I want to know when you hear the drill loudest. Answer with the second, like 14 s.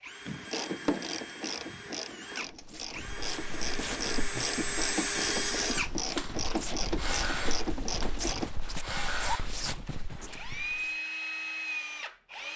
5 s.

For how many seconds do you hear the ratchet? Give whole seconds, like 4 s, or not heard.
8 s.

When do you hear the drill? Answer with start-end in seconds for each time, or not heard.
0.0-12.5.